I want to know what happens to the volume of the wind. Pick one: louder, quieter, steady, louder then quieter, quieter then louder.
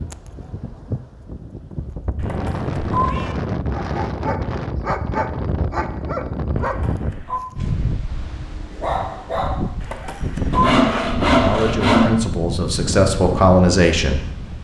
steady.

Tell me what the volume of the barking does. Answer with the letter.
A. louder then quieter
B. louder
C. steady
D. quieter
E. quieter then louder
E.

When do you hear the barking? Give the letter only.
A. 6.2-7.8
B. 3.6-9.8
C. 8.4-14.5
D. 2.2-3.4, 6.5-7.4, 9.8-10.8
B.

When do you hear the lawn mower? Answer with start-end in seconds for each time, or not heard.
not heard.